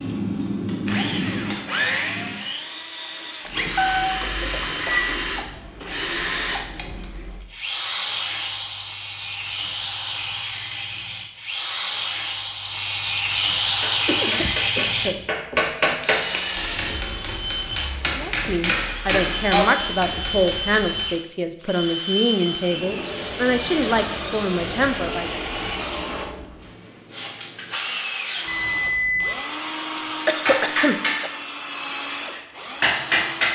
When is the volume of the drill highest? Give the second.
14 s.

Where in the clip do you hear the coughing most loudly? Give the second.
30 s.